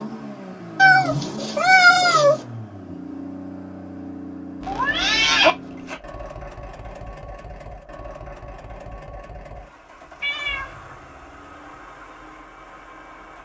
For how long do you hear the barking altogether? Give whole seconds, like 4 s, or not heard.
not heard.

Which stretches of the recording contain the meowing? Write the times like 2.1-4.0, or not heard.
0.8-2.5, 4.6-6.0, 10.2-10.8.